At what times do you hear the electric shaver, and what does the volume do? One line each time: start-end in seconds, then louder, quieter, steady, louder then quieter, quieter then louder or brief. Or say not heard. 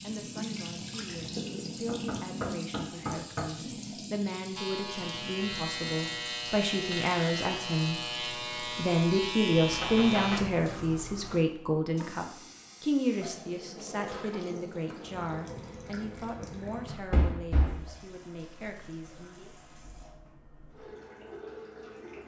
4.5-10.4 steady.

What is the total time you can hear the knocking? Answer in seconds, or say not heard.
3 s.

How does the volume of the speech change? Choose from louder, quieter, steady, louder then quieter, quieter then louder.
louder then quieter.